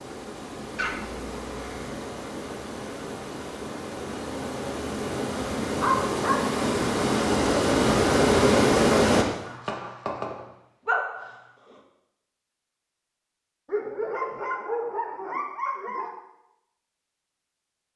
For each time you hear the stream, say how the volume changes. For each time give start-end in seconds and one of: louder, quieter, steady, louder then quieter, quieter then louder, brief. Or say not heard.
0.0-9.2 louder.